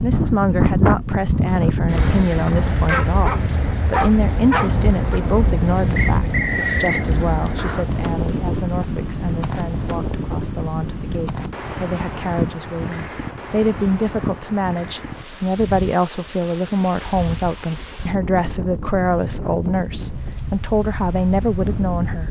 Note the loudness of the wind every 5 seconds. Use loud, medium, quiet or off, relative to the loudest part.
loud, loud, medium, medium, medium.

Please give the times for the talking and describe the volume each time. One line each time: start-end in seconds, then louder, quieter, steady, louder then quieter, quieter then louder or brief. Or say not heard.
0.0-22.2 quieter then louder.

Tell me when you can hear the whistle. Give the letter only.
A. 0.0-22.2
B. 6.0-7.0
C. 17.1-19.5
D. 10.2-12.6
B.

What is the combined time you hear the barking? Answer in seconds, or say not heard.
2 s.